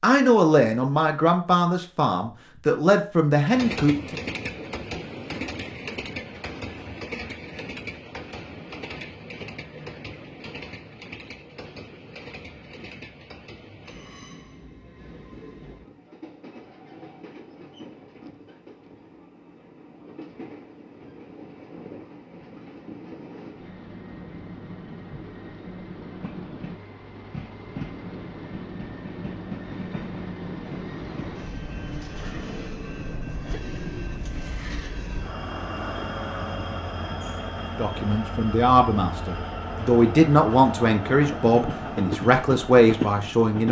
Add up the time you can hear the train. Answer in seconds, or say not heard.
40 s.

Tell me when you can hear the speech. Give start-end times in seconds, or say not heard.
0.0-4.2, 37.8-43.6.